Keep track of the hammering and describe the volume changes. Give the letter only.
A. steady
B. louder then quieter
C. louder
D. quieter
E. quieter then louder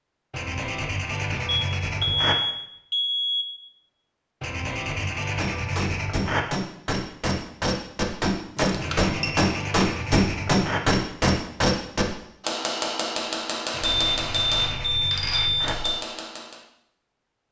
B.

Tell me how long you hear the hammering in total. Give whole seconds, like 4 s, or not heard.
12 s.